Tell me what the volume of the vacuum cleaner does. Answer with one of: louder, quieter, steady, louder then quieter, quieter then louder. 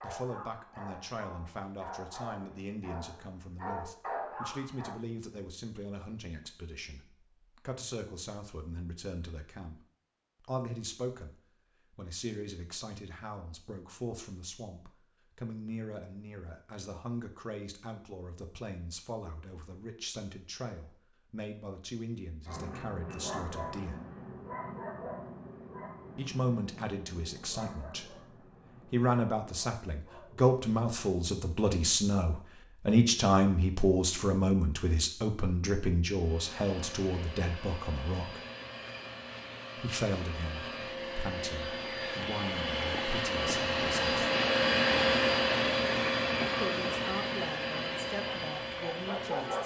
louder then quieter.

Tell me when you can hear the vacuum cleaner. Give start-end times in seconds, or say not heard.
36.1-49.6.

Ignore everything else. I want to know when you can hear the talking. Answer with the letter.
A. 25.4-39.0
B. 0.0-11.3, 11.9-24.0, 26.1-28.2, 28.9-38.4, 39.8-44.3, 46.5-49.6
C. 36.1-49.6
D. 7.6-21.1
B.